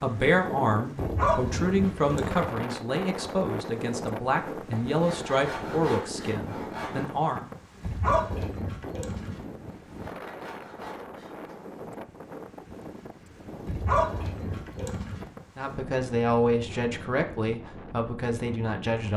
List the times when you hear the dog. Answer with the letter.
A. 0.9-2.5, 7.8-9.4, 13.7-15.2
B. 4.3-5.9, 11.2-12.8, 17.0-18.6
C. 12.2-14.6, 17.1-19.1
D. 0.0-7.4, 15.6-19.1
A.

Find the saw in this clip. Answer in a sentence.
The saw can be heard from 4.7 to 7.2 s and from 9.7 to 11.7 s.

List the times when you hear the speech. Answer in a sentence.
You can hear the speech from 0.0 to 7.4 s and from 15.6 to 19.1 s.